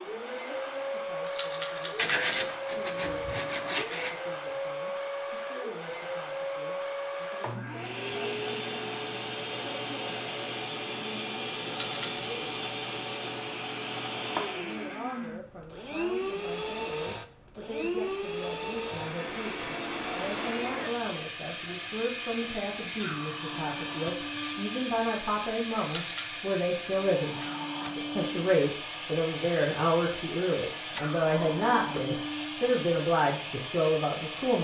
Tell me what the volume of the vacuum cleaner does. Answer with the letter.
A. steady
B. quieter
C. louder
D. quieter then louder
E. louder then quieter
A.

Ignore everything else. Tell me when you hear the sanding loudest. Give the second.
2 s.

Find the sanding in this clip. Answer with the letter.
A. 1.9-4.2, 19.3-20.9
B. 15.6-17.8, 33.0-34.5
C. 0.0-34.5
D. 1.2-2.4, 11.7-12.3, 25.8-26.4
A.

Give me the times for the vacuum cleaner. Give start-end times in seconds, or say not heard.
0.0-34.5.